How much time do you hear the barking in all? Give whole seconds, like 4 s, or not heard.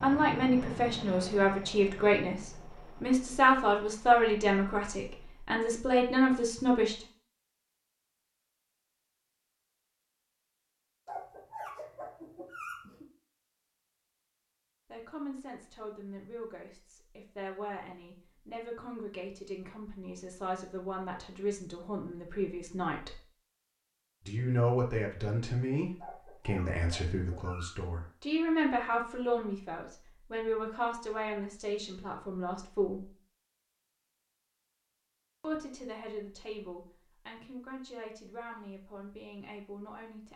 4 s.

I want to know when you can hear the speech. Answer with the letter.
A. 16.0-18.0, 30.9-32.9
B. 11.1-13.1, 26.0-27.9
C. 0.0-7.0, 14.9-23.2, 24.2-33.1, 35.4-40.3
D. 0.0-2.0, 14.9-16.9
C.